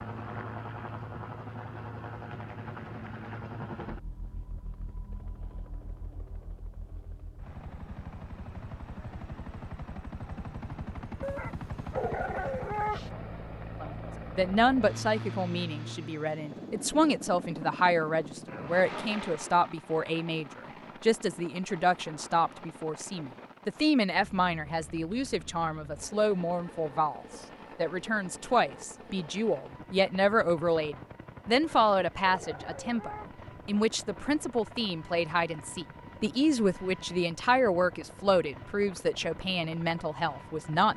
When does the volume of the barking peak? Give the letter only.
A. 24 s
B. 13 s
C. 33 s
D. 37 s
B.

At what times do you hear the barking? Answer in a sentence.
The barking can be heard from 11.2 to 13.1 s and from 31.5 to 33.3 s.